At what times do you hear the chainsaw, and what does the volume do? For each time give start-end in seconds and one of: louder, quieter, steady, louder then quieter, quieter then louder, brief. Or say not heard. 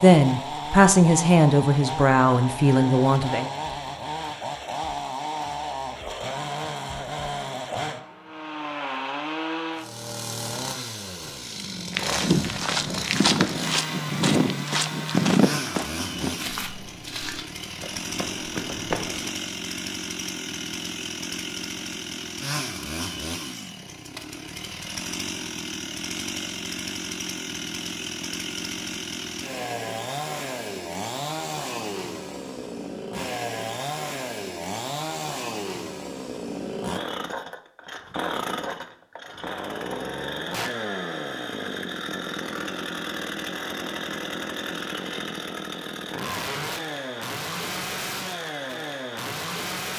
0.0-49.9 steady.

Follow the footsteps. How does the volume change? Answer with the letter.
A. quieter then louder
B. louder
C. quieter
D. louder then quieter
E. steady
C.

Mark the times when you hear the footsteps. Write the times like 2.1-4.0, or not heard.
11.9-19.3.